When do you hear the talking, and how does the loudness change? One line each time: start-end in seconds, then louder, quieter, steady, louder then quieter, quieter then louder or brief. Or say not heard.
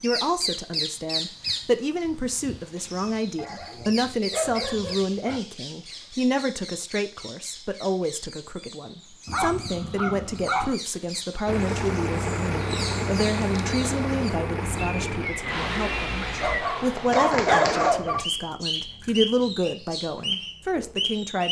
0.0-21.4 steady.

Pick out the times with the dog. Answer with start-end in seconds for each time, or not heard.
3.4-5.4, 9.2-10.8, 16.4-18.2.